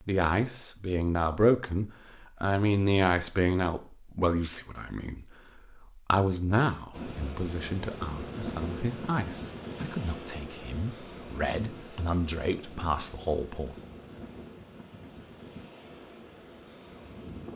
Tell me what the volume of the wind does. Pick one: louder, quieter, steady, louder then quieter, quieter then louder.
quieter.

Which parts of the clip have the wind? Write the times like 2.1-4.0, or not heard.
6.9-17.5.